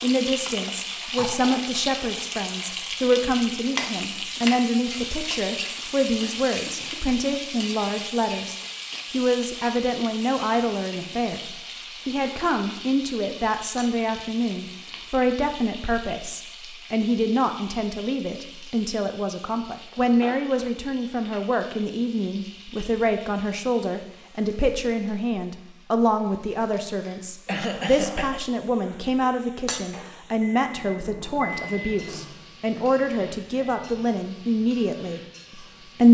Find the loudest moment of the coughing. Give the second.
28 s.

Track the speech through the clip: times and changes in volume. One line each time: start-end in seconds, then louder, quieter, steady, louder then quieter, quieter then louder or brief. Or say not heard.
0.0-36.1 steady.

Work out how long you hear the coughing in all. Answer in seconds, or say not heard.
3 s.